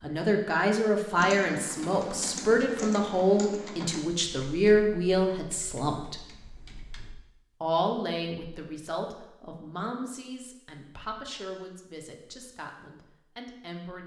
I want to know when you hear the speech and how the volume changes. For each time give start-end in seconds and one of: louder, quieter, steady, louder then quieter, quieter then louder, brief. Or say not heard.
0.0-6.2 steady
7.6-14.0 quieter.